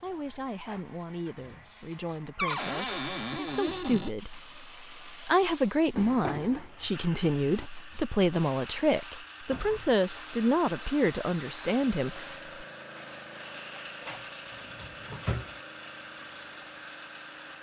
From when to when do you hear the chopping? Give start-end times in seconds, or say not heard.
not heard.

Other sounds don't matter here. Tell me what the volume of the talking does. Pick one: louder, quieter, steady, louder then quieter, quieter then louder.
louder.